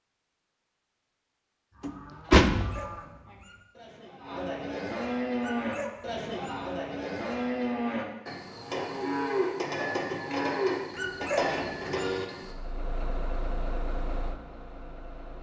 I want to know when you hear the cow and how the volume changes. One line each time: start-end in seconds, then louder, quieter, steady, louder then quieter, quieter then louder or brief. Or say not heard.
1.7-12.6 louder.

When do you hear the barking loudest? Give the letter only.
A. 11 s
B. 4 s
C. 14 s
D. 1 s
A.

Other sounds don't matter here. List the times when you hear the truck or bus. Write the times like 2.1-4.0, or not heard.
12.4-15.3.